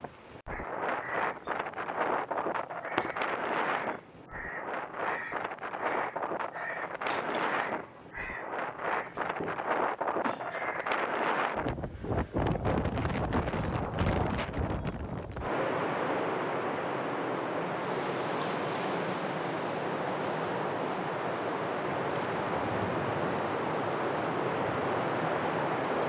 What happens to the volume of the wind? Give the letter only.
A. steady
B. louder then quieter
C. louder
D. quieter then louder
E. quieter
A.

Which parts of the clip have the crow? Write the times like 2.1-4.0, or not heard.
0.5-10.9.